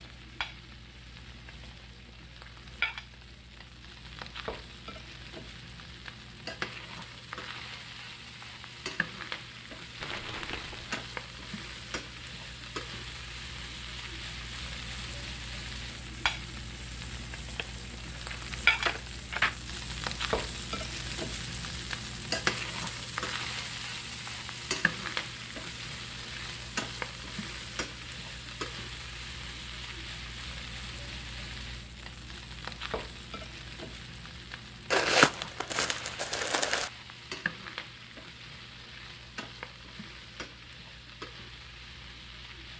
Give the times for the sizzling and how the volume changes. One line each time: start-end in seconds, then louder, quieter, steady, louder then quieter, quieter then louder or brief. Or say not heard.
0.0-42.7 louder then quieter.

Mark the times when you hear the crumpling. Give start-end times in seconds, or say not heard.
10.0-11.1, 17.6-19.6, 34.9-36.9.